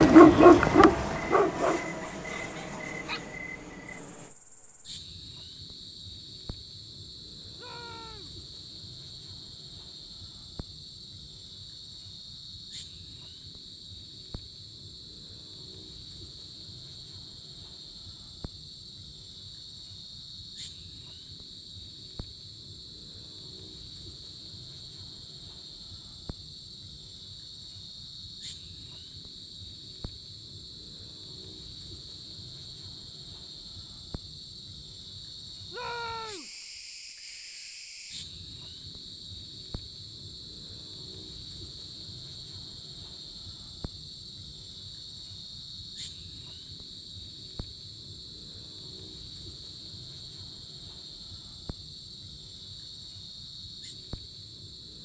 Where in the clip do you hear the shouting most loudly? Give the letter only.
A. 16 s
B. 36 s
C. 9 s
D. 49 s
B.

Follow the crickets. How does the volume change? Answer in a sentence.
The volume of the crickets stays about the same.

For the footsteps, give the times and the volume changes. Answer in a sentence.
You can't hear the footsteps here.